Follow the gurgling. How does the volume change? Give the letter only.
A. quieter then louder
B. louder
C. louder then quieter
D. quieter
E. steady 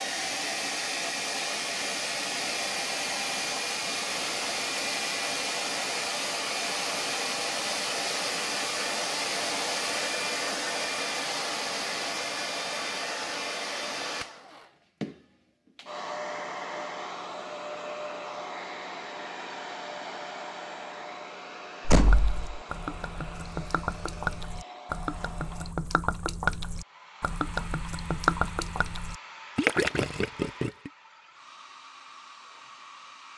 B.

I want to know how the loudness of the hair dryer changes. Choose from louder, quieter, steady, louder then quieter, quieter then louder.
quieter.